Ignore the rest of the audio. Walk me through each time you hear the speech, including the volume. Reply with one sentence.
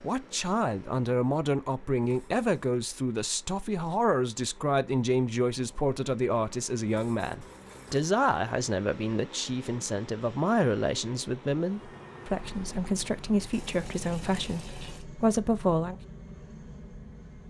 The speech can be heard from 0.0 to 16.0 s, at a steady volume.